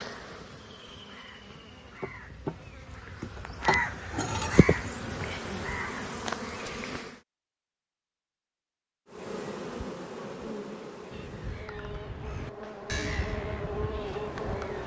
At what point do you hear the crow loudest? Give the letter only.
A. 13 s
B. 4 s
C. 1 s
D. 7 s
B.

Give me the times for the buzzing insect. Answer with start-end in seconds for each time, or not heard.
0.0-7.2, 9.1-14.8.